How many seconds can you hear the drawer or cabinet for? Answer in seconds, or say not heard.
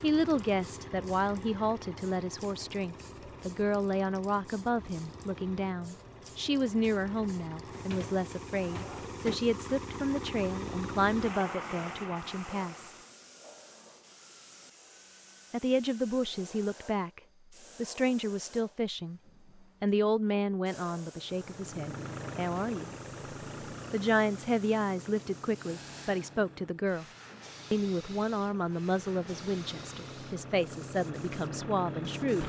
2 s.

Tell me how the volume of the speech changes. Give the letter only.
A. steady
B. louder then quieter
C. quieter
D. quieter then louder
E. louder
A.